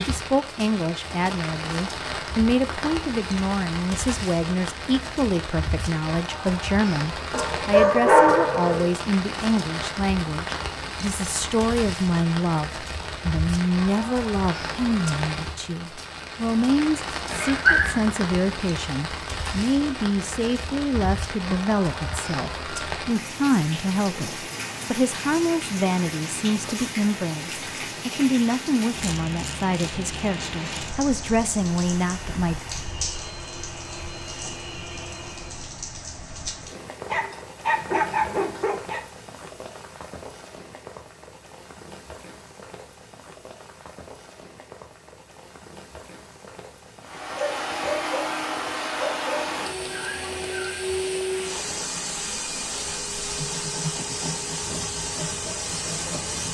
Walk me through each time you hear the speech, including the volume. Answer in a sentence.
You can hear the speech from 0.0 to 32.6 s, at a steady volume.